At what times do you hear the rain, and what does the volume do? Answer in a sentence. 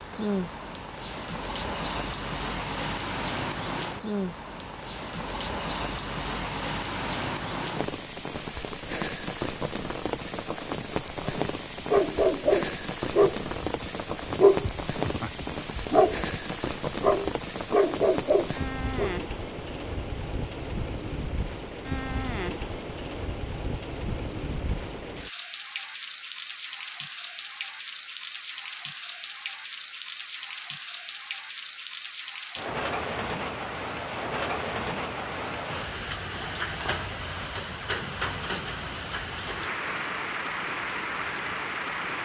You can hear the rain from 0.0 to 42.2 s, at a steady volume.